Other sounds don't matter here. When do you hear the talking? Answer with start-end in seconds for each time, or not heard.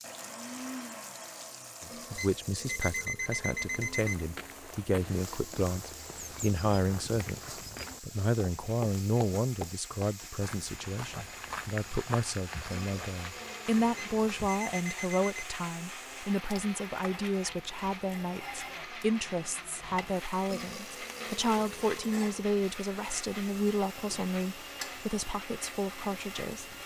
1.9-26.8.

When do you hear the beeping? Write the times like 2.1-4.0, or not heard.
2.1-4.2, 13.9-15.4.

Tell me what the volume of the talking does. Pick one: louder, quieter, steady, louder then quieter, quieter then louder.
steady.